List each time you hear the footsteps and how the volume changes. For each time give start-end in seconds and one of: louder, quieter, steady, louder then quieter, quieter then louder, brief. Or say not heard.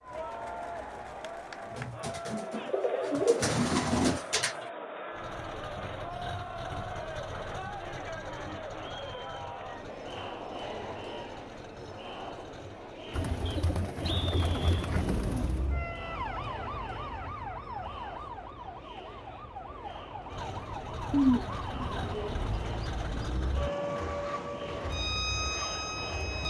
not heard.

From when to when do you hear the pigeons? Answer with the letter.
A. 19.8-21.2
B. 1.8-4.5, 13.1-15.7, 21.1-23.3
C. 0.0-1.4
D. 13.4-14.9
B.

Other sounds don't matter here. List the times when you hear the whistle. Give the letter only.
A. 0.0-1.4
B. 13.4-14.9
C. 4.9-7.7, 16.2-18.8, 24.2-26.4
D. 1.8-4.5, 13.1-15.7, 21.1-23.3
B.